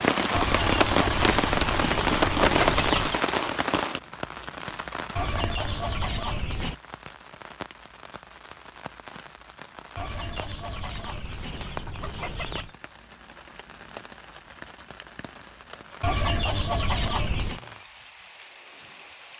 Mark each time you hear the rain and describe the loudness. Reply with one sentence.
The rain can be heard from 0.0 to 19.3 s, getting quieter.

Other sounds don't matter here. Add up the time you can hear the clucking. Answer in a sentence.
You can hear the clucking for 9 seconds altogether.